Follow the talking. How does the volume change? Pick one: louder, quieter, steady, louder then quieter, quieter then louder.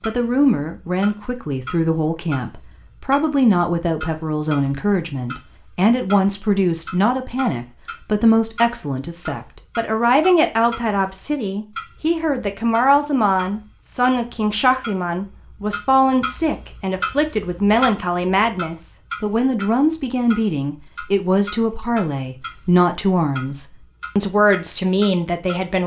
steady.